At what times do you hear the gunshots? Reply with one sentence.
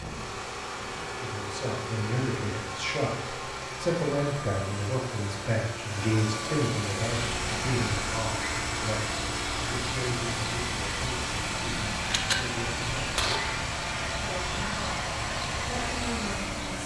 The gunshots can be heard from 12.0 to 13.4 s.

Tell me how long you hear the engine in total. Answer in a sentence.
The engine can be heard for 17 seconds in total.